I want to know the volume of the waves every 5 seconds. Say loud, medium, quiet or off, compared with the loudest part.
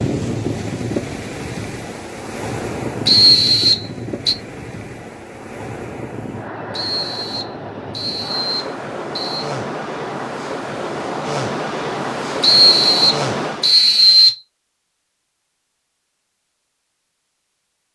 loud, medium, loud, off.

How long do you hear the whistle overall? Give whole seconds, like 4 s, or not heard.
6 s.